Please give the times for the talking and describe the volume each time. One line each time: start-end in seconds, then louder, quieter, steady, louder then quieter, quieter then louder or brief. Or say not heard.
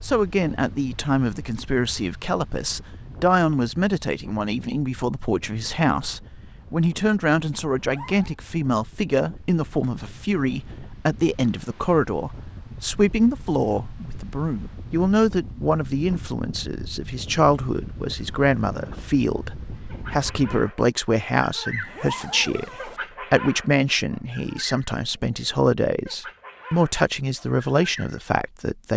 0.0-28.9 steady.